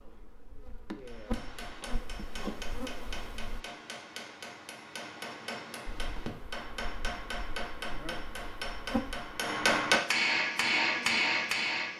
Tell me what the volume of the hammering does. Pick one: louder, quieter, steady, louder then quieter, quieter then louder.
louder.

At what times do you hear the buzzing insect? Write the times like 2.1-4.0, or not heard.
0.0-3.6, 6.0-11.9.